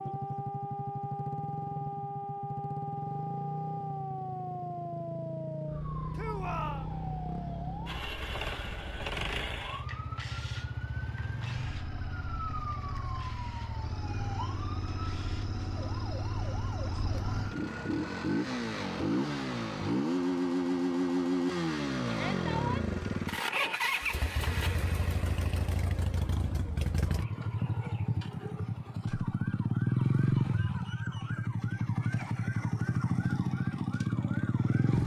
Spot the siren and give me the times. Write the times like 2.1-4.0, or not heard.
0.0-21.8, 27.1-35.0.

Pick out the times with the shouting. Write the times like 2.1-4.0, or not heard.
6.2-6.9, 22.1-22.9.